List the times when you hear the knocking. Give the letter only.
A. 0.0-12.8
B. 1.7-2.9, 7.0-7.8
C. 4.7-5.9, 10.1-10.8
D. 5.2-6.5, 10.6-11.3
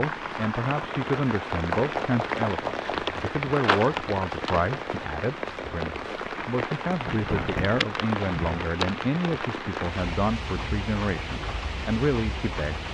B.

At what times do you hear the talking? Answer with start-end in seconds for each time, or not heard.
0.0-12.8.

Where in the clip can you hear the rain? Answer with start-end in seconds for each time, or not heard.
0.0-12.9.